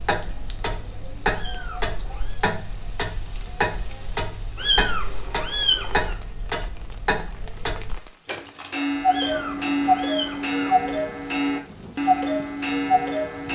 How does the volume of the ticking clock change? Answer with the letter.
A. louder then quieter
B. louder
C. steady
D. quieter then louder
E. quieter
B.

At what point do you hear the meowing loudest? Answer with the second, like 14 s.
6 s.